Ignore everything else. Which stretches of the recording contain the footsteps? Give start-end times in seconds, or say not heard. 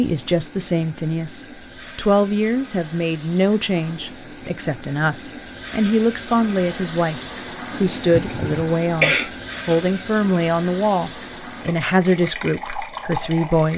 not heard.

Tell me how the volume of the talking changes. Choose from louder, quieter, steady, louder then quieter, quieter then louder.
steady.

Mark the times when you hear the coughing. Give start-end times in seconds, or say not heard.
8.1-9.3.